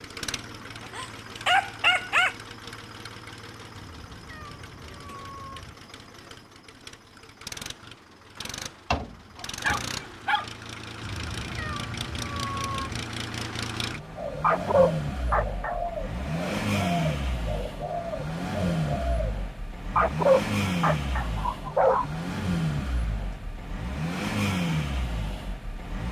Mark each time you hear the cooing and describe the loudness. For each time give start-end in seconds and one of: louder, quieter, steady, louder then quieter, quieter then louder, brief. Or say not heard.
14.2-19.4 steady.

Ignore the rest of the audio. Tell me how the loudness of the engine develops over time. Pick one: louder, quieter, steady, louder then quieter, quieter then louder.
louder.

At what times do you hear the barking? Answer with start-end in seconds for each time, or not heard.
0.9-2.4, 8.9-10.4, 14.4-15.9, 19.9-22.1.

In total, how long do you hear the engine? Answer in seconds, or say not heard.
26 s.